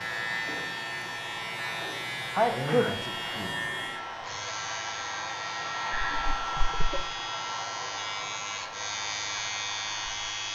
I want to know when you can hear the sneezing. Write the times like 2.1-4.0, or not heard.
2.4-3.0, 5.9-7.0.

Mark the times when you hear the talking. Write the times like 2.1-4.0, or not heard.
2.5-3.8.